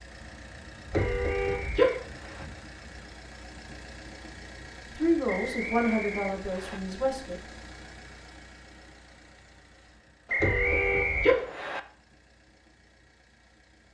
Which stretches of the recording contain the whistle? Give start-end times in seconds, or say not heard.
0.9-2.5, 5.2-6.8, 10.2-11.8.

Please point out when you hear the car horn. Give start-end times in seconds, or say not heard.
0.9-1.9, 10.4-11.3.